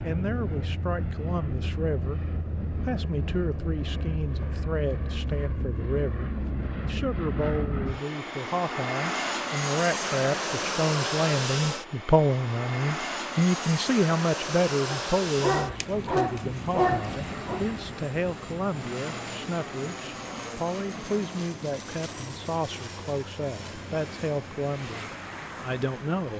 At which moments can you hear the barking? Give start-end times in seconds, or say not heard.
14.8-17.6.